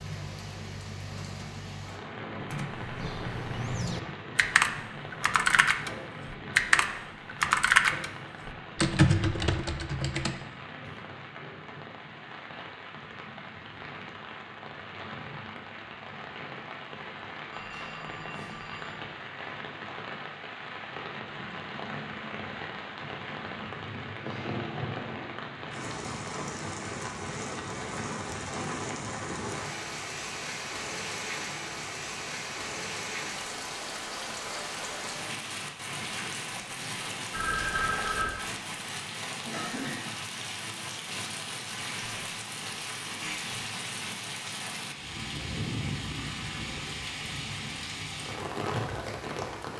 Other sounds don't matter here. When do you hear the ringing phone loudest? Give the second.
38 s.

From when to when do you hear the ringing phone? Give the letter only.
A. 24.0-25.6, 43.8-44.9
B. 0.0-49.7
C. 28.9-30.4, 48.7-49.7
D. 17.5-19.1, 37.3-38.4
D.